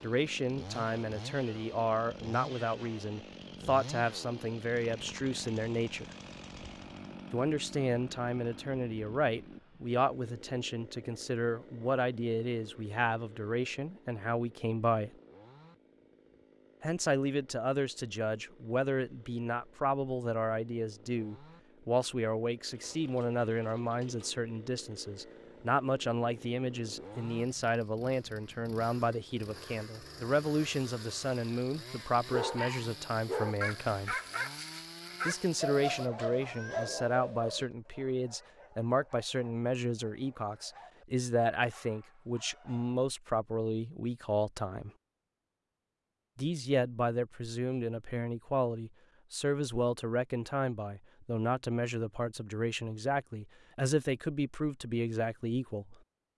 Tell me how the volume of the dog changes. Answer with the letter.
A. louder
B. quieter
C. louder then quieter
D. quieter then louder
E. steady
B.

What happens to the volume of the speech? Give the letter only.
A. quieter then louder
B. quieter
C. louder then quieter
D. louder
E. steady
E.